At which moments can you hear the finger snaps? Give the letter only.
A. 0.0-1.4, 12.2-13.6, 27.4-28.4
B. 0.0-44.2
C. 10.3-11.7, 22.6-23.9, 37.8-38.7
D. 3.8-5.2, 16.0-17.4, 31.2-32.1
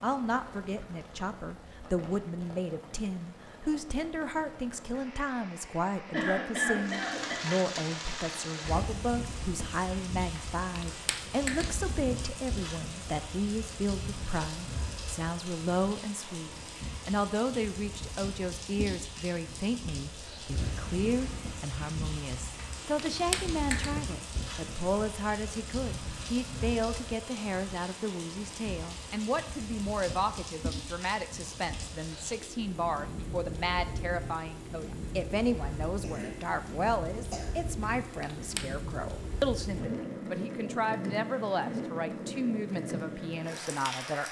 C.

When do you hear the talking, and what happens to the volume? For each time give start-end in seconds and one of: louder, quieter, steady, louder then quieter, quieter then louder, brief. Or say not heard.
0.0-44.2 steady.